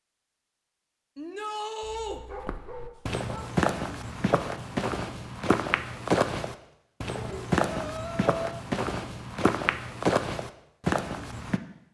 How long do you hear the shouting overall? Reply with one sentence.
You can hear the shouting for 2 seconds altogether.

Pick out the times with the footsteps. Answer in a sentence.
You can hear the footsteps from 2.4 to 11.6 s.